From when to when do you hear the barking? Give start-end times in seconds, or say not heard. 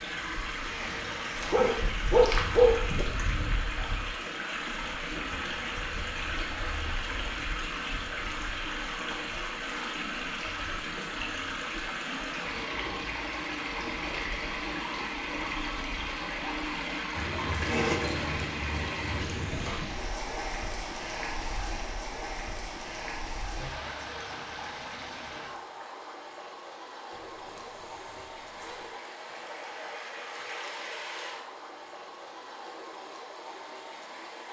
1.5-3.0.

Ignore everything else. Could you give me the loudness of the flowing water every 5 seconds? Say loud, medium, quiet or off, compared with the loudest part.
loud, loud, loud, loud, loud, medium, medium.